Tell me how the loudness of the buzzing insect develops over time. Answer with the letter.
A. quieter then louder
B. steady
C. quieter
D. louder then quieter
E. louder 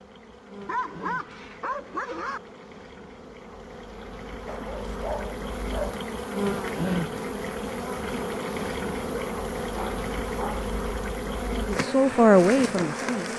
E.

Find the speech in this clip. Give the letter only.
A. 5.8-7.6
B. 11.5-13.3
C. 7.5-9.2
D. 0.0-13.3
B.